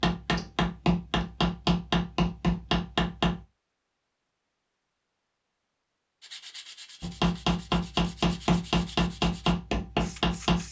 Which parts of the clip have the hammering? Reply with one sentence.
You can hear the hammering from 0.0 to 3.5 s and from 7.0 to 10.6 s.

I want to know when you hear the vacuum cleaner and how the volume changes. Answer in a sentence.
You can't hear the vacuum cleaner here.